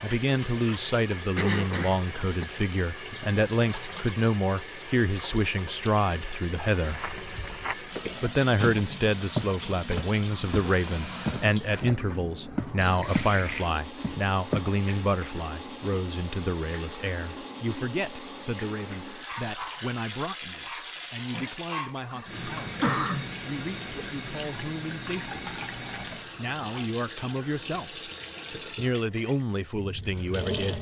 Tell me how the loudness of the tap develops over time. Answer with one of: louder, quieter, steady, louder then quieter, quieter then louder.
steady.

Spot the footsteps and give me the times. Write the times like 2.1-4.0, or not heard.
6.8-13.3, 14.0-14.8.